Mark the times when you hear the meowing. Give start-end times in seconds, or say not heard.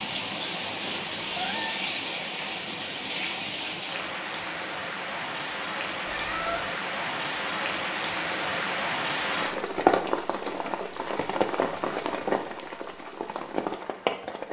1.0-1.8, 6.0-6.7, 11.7-12.4.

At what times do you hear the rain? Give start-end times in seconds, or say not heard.
0.0-14.4.